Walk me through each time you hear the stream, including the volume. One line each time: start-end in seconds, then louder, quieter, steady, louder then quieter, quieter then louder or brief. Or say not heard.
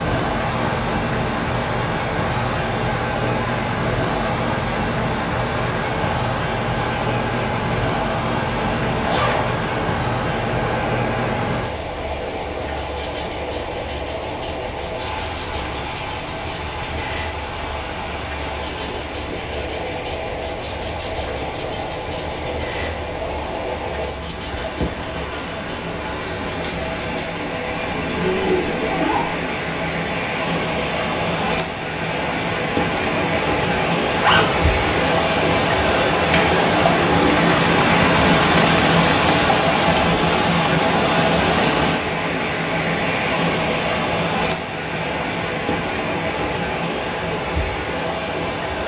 0.0-48.8 louder.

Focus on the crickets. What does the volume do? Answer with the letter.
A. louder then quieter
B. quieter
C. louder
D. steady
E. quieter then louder
B.